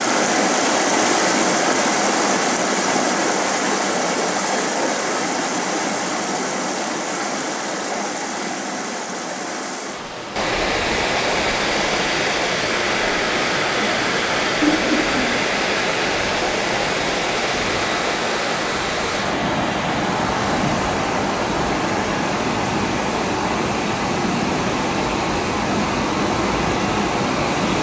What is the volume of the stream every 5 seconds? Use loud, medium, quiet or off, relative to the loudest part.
loud, medium, loud, loud, loud, loud.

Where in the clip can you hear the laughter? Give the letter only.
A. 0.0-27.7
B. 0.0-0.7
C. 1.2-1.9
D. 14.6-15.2
D.